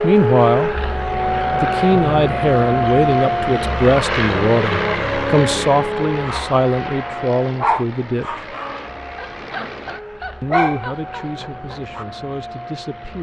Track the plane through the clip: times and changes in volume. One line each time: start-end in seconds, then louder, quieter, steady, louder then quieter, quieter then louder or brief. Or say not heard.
0.0-13.1 quieter.